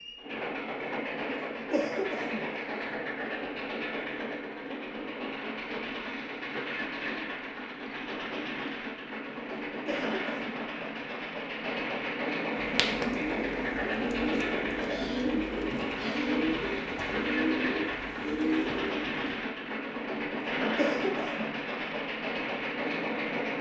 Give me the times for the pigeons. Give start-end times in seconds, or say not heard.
12.6-19.4.